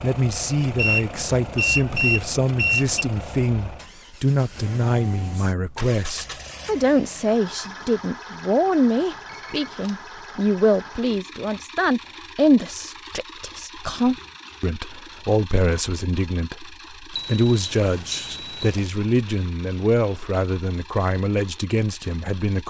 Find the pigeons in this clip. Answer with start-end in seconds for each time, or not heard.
not heard.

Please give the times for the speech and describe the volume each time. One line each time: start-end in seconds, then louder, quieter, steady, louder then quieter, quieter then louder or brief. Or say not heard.
0.0-22.6 steady.